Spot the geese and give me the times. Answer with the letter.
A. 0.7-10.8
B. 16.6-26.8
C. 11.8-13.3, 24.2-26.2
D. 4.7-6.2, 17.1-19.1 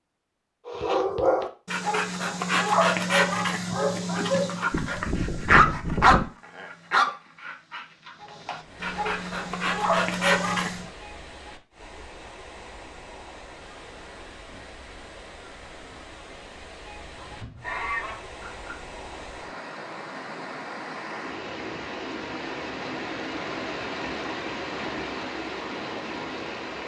D.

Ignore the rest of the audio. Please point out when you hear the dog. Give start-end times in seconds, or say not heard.
0.7-10.8.